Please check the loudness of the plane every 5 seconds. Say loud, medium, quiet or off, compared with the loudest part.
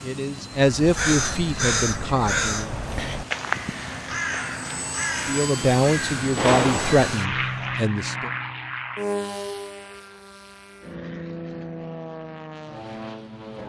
medium, loud, medium.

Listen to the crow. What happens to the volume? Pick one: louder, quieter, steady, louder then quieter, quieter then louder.
quieter.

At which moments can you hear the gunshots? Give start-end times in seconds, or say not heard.
6.3-7.1.